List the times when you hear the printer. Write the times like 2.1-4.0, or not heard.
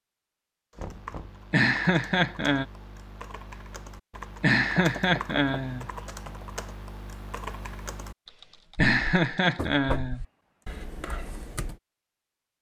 not heard.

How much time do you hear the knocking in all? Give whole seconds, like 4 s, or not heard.
2 s.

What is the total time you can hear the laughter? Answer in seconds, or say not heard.
4 s.